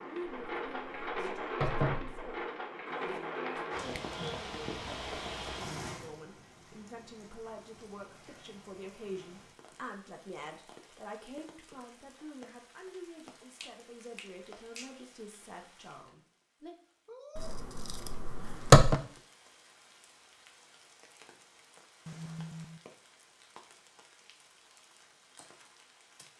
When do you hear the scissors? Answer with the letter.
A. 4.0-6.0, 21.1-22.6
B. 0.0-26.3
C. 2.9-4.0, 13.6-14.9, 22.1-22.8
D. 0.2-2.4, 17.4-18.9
D.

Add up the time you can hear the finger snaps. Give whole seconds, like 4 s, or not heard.
3 s.